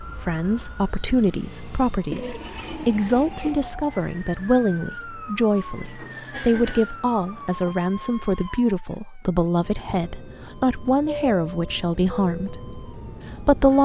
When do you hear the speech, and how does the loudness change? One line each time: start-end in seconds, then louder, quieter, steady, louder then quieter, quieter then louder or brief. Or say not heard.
0.0-13.8 steady.